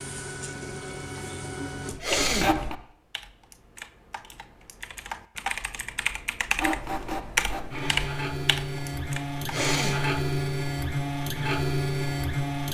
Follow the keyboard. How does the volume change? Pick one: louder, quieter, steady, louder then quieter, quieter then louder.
louder.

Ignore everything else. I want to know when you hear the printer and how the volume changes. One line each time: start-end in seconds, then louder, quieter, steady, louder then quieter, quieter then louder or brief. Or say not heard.
0.0-2.8 brief
6.5-12.6 louder.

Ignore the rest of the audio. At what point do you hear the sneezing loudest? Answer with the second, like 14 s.
2 s.